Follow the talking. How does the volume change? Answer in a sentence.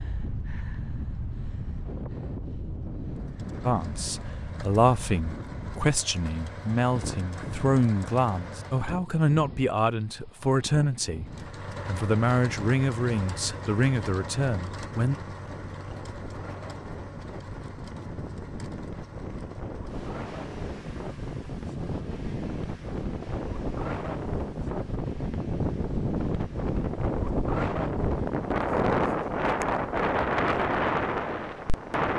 The volume of the talking stays about the same.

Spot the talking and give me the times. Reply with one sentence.
You can hear the talking from 3.6 to 15.2 s.